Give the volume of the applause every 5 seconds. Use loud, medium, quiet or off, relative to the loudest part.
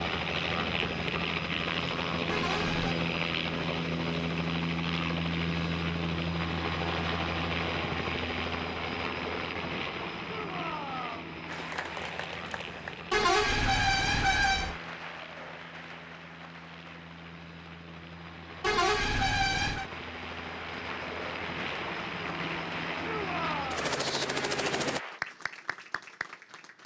off, off, loud, medium, loud, loud.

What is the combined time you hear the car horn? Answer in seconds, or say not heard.
4 s.